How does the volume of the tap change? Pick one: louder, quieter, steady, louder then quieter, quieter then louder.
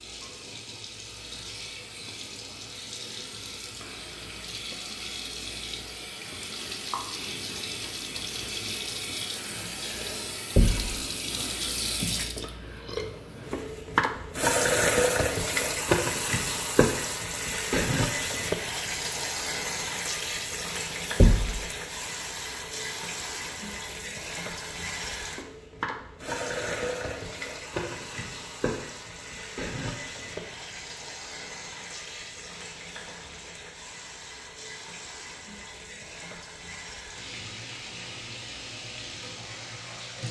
louder then quieter.